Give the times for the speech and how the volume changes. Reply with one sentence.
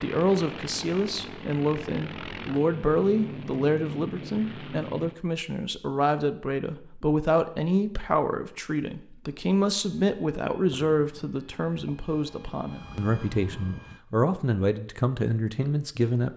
The speech can be heard from 0.0 to 16.3 s, at a steady volume.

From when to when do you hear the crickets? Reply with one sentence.
The crickets can't be heard in this clip.